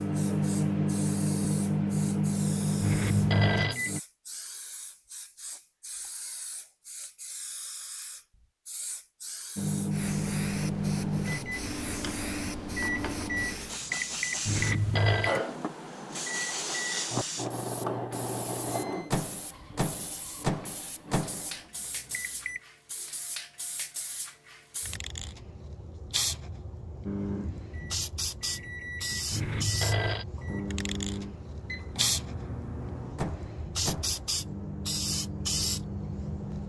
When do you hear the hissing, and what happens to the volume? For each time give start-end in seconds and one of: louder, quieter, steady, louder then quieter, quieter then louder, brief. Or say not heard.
0.0-36.6 louder.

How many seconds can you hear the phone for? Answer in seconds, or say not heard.
3 s.